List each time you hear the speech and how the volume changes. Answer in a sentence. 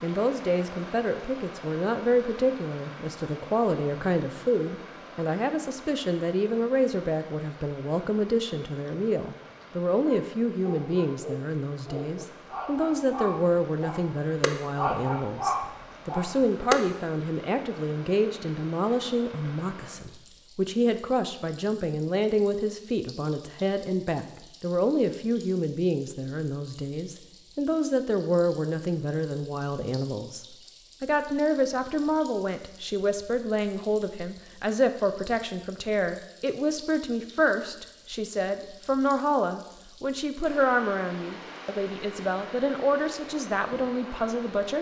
You can hear the speech from 0.0 to 44.7 s, at a steady volume.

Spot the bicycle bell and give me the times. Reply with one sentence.
The bicycle bell can't be heard in this clip.